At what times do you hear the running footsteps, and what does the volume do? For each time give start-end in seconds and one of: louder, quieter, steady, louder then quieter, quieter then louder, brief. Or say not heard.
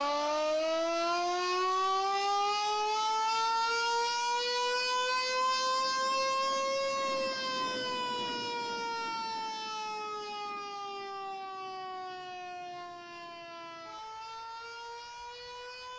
not heard.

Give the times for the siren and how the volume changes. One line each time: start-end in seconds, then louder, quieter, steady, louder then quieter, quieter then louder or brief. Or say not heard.
0.0-15.9 quieter.